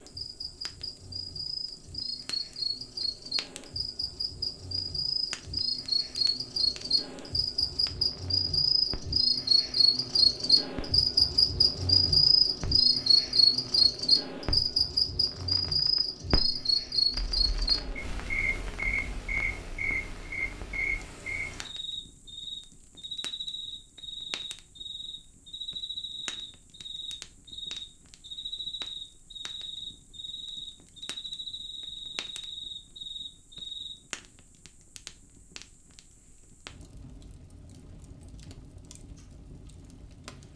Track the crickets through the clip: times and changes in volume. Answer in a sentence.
The crickets can be heard from 0.0 to 34.0 s, getting louder then quieter.